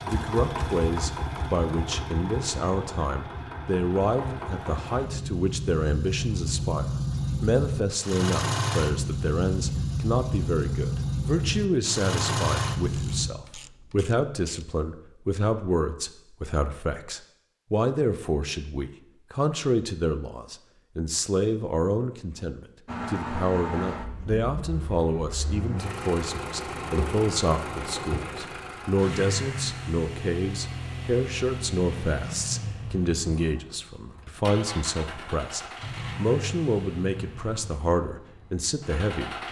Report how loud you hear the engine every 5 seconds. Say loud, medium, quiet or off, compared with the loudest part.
medium, loud, loud, off, medium, medium, medium, medium.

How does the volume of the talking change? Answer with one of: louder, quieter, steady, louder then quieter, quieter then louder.
steady.